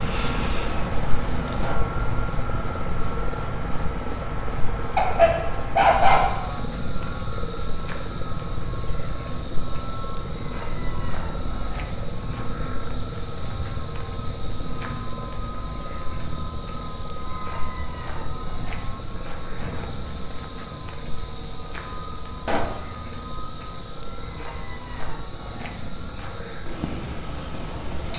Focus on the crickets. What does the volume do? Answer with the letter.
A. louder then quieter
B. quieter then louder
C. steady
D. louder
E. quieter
C.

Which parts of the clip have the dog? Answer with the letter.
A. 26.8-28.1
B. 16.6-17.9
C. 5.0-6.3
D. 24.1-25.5
C.